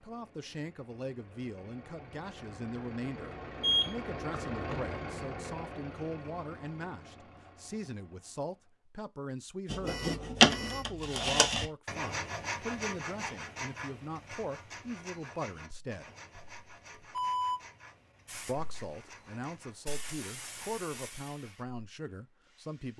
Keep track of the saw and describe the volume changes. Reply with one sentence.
The volume of the saw goes down.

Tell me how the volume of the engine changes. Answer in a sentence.
The volume of the engine goes up, then down.